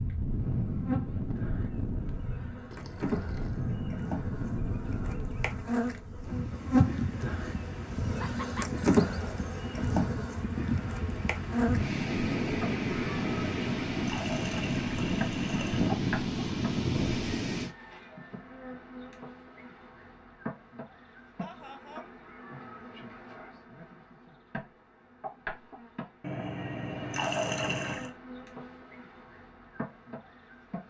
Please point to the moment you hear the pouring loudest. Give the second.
27 s.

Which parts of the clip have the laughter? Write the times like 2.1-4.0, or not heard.
8.2-8.7, 21.4-22.1.